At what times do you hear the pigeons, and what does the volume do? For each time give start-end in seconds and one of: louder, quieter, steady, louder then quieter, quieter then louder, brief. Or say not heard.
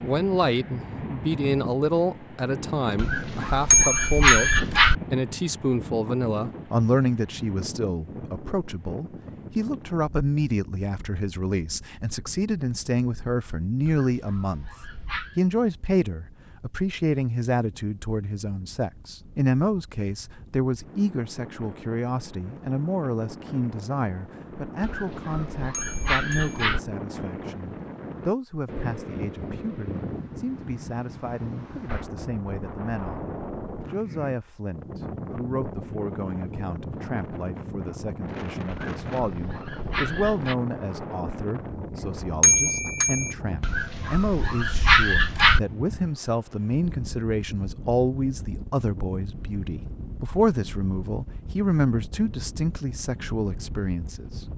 not heard.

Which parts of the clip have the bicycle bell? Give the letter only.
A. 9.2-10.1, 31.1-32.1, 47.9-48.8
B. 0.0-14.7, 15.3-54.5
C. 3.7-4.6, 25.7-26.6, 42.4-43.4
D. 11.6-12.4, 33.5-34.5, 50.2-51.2
C.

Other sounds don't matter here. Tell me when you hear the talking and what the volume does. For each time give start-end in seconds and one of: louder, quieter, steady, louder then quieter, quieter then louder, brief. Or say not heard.
0.0-14.7 steady
15.3-54.5 quieter then louder.